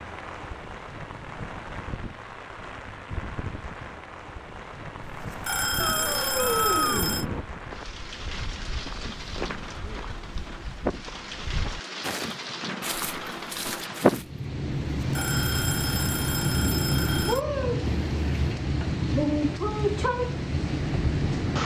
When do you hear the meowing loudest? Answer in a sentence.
The loudest moment of the meowing is at 7 seconds.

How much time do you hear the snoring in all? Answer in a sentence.
The snoring can't be heard in this clip.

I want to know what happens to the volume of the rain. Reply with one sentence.
The volume of the rain goes up.